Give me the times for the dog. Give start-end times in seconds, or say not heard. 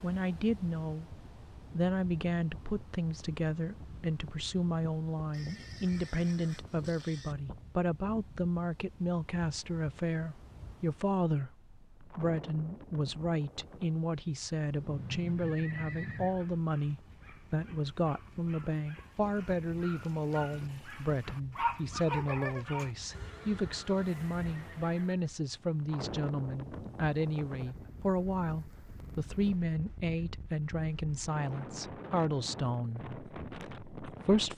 16.2-22.9.